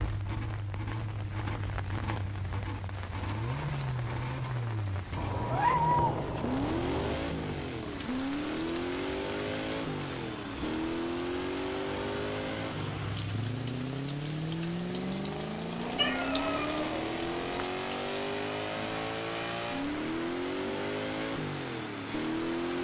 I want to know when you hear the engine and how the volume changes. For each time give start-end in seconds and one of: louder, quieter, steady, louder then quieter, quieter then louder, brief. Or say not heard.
0.0-22.8 steady.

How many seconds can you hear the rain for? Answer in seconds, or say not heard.
23 s.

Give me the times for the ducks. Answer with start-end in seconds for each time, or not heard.
not heard.